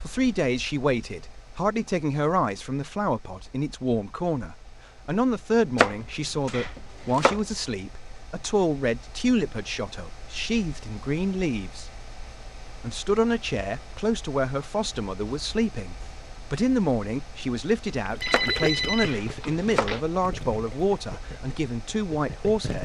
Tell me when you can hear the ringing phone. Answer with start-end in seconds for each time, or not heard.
18.2-20.0.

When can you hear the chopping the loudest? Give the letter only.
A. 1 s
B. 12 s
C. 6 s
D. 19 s
C.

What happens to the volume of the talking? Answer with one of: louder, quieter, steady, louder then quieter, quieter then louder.
steady.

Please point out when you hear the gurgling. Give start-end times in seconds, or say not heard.
18.1-22.8.